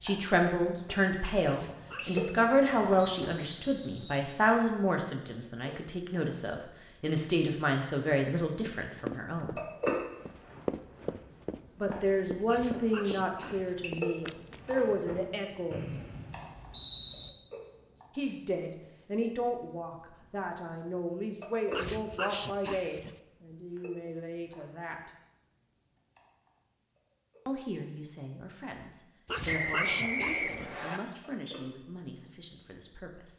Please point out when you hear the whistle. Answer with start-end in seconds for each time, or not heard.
3.1-4.3, 15.7-17.3, 29.4-31.0.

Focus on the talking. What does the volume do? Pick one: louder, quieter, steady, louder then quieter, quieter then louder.
quieter.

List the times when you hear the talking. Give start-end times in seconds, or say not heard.
0.0-9.6, 11.8-15.8, 18.1-25.1, 27.4-33.3.